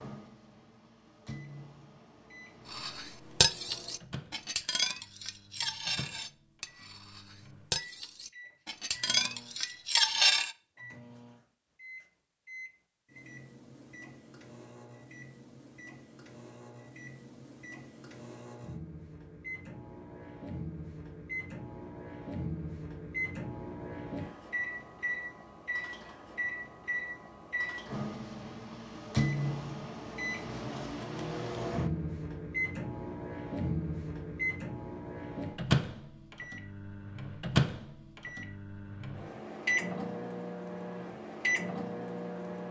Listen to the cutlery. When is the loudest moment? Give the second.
10 s.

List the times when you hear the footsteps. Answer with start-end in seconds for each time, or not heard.
not heard.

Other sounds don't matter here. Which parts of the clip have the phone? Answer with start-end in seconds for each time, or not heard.
not heard.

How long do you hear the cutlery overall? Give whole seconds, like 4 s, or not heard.
8 s.